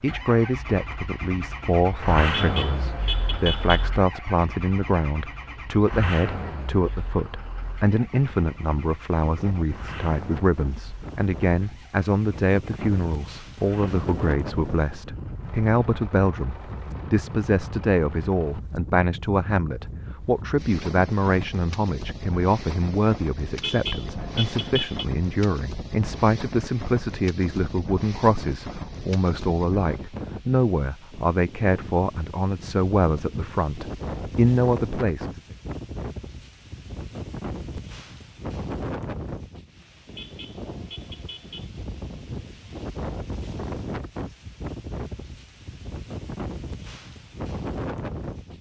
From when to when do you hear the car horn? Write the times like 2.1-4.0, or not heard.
2.3-3.9, 23.6-25.1, 40.1-41.7.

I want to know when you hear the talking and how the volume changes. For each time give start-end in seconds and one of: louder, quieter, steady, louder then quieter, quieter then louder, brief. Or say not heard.
0.0-35.4 steady.